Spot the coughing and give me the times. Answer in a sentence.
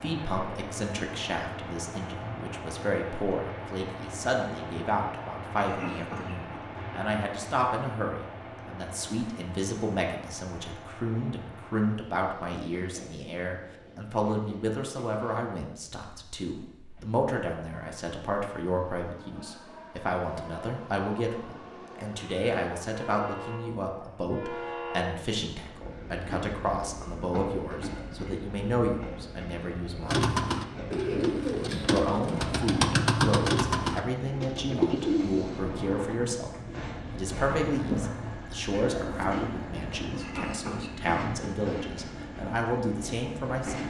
The coughing can be heard from 5.5 to 6.6 s and from 40.1 to 41.5 s.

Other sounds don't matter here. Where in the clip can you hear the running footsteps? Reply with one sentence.
You can't hear the running footsteps here.